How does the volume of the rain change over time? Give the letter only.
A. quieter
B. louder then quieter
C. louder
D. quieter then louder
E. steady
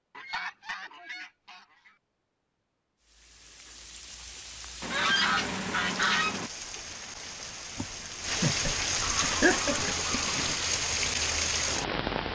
C.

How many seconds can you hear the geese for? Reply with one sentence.
The geese can be heard for 5 seconds in total.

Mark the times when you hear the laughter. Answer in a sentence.
The laughter can be heard from 7.8 to 9.9 s.